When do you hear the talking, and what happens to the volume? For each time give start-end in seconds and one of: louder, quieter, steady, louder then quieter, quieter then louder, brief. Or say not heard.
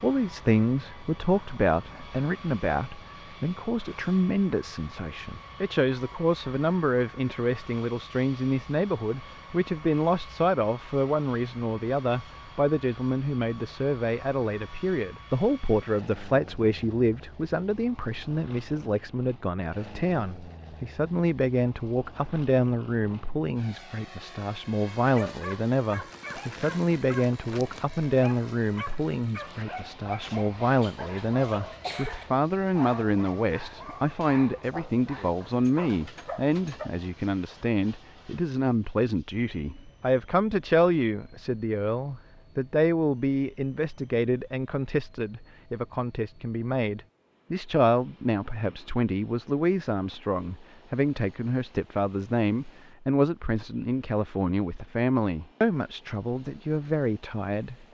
0.0-57.8 steady.